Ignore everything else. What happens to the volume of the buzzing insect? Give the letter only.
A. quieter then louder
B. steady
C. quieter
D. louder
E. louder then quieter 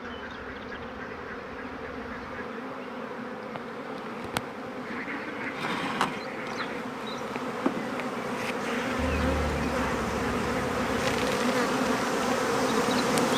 D.